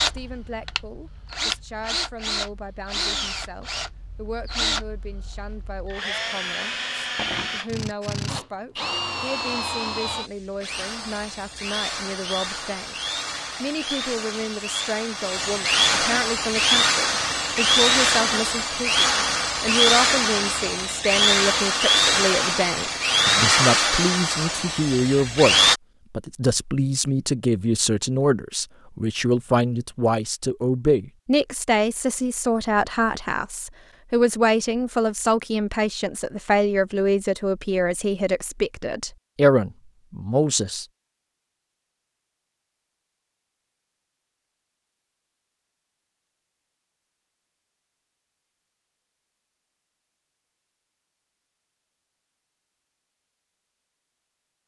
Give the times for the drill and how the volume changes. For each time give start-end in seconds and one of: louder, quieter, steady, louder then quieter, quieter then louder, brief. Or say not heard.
0.0-25.8 louder.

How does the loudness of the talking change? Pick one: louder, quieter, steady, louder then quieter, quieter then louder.
louder.